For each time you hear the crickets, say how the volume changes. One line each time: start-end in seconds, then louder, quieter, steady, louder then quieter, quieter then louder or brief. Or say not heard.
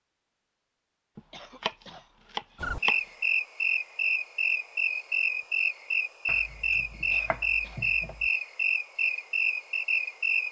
2.5-10.4 steady.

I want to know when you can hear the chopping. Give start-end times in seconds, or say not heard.
1.1-3.0, 6.2-8.3.